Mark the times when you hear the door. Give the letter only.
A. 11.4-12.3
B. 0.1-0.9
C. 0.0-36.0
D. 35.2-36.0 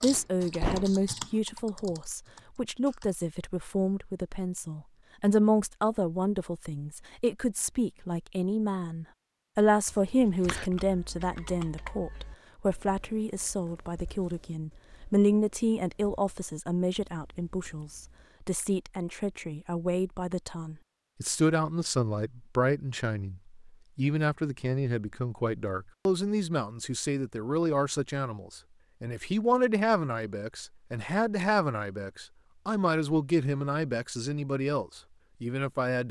B.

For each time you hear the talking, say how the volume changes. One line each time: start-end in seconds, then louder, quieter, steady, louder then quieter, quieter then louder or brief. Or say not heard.
0.0-36.0 steady.